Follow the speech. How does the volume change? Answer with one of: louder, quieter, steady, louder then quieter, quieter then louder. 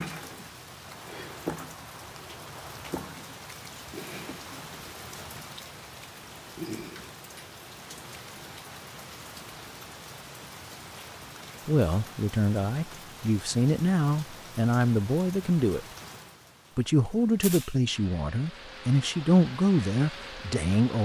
steady.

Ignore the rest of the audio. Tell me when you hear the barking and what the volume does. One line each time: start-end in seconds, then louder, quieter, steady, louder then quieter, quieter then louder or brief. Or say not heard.
not heard.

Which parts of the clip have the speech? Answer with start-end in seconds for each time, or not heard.
11.7-15.8, 16.8-21.0.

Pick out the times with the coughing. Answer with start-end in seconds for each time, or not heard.
not heard.